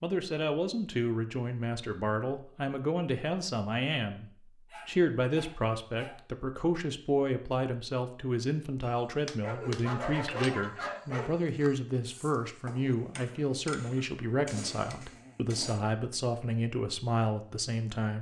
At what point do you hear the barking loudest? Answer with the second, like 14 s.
10 s.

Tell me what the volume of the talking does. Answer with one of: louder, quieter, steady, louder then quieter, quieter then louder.
steady.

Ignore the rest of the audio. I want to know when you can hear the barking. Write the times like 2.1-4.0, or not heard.
4.7-6.2, 9.4-11.3.